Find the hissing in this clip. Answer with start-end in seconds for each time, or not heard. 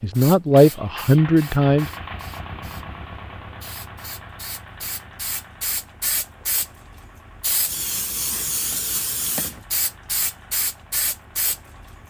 0.1-12.0.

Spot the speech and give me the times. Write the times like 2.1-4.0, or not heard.
0.0-1.9.